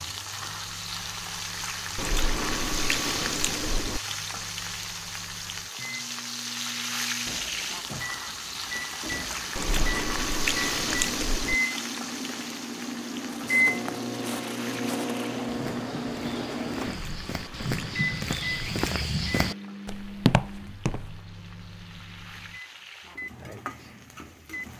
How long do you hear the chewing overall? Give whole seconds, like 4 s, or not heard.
6 s.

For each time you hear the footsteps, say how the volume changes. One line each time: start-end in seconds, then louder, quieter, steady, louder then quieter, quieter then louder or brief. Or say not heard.
13.4-21.2 louder.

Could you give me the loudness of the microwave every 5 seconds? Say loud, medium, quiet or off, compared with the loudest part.
quiet, medium, loud, loud, quiet.